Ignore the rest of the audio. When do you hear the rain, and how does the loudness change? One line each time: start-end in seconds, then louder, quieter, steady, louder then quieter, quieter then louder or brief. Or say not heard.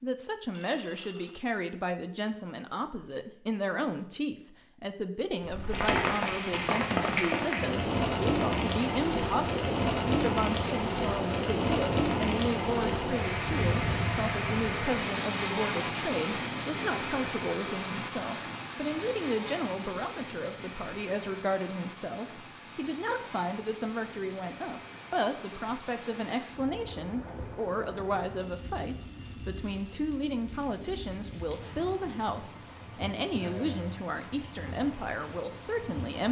5.4-36.2 quieter.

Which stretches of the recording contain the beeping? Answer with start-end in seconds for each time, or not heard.
0.5-1.4, 28.4-29.9.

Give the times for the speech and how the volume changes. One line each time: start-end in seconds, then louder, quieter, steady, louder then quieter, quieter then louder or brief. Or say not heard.
0.0-36.2 steady.